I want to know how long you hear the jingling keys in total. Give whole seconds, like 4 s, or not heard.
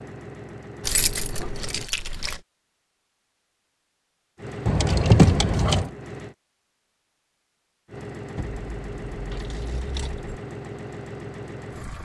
5 s.